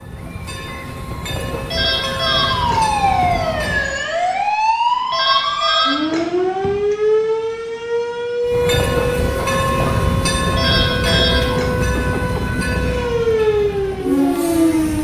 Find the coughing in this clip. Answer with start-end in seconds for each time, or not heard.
not heard.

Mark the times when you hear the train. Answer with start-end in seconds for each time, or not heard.
0.0-4.0, 8.4-14.9.